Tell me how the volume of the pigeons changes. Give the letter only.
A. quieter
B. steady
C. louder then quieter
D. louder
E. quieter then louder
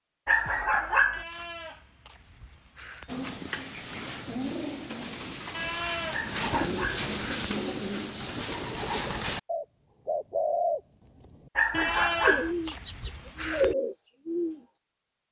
D.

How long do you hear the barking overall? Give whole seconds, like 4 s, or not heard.
3 s.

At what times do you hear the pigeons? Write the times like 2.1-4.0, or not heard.
3.0-14.6.